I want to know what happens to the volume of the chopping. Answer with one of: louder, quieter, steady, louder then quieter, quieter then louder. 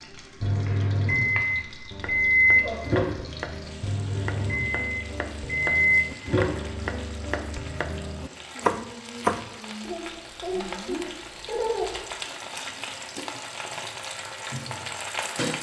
louder.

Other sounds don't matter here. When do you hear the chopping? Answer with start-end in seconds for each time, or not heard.
0.7-9.7.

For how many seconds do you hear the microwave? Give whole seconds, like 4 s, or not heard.
7 s.